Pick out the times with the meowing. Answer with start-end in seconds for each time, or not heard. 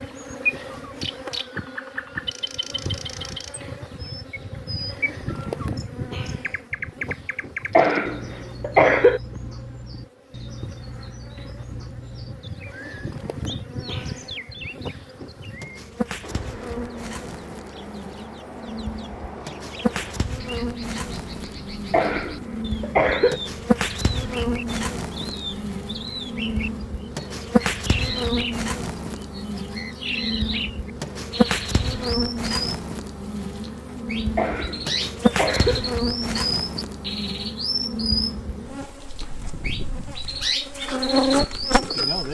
not heard.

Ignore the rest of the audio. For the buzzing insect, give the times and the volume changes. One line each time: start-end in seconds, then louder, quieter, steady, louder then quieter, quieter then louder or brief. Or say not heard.
0.0-42.2 louder.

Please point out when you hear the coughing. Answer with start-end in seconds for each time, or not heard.
7.7-9.2, 21.9-23.4, 34.4-35.8.